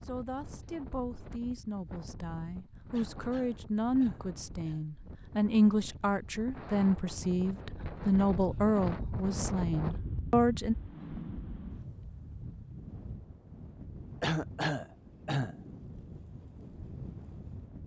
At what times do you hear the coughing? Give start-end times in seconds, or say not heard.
2.9-4.8, 14.2-15.6.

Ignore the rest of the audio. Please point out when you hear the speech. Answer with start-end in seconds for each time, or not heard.
0.1-10.8.